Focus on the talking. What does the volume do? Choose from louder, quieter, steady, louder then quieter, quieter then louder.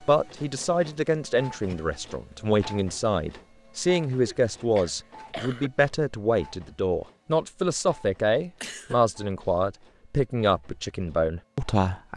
steady.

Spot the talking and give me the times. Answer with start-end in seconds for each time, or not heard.
0.0-12.1.